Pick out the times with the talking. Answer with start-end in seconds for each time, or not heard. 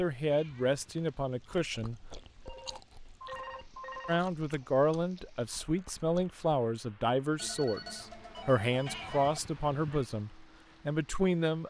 0.0-2.0, 4.0-11.6.